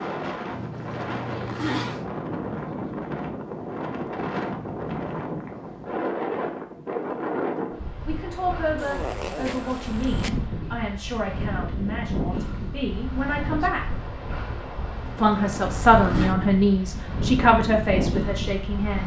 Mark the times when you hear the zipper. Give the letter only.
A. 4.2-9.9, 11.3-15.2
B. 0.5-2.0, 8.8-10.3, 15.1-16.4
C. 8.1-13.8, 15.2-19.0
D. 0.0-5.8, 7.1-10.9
B.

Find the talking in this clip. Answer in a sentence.
The talking can be heard from 8.1 to 13.8 s and from 15.2 to 19.0 s.